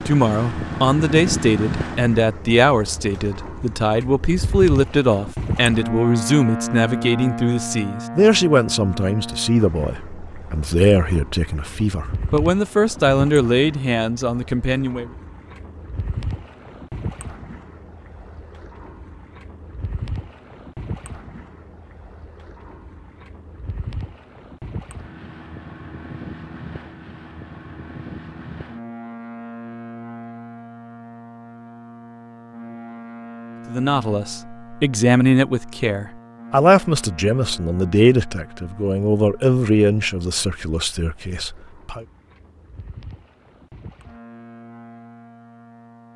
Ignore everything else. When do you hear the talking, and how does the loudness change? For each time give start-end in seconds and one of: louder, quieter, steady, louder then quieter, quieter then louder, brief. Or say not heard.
0.1-15.1 steady
33.6-42.0 quieter.